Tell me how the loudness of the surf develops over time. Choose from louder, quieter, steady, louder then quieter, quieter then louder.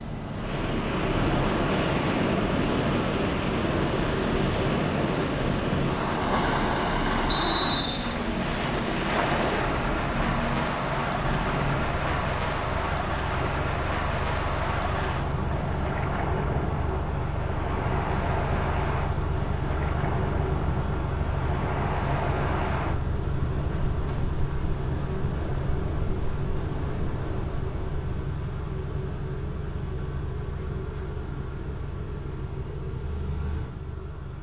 quieter.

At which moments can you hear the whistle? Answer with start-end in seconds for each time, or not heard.
7.2-8.2.